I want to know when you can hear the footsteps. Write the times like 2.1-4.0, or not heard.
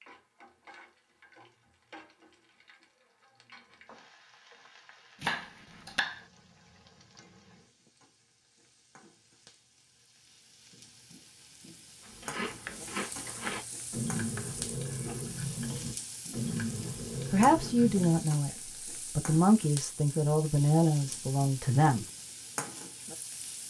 not heard.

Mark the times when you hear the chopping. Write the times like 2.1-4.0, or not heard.
5.2-6.2, 12.5-14.6.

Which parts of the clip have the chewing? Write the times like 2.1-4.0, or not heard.
12.0-18.1.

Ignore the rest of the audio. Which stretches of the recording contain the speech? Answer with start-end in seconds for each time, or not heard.
17.3-22.1.